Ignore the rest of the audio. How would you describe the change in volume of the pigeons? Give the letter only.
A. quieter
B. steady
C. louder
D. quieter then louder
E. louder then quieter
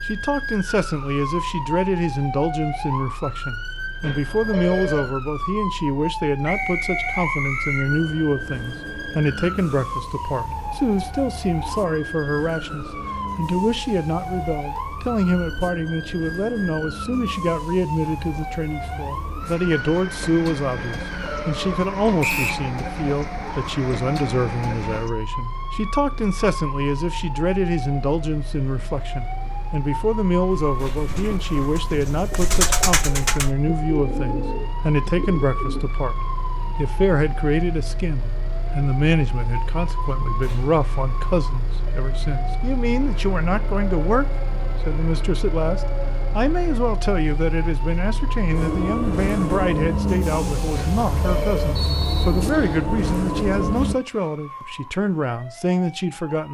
E.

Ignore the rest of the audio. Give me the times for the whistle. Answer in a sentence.
You can hear the whistle from 6.5 to 7.8 s, from 22.2 to 22.6 s and from 51.8 to 52.9 s.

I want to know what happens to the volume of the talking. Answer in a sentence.
The volume of the talking stays about the same.